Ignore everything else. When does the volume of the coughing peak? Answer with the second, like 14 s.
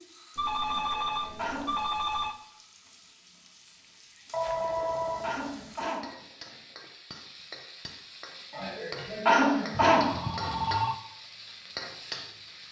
9 s.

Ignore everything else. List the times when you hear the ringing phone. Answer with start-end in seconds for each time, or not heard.
0.3-2.4, 4.3-5.8, 9.7-11.0.